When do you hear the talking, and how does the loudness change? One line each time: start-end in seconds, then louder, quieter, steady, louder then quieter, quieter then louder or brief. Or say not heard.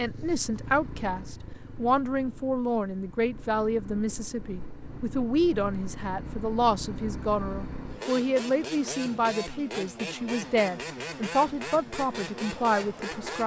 0.0-13.4 steady.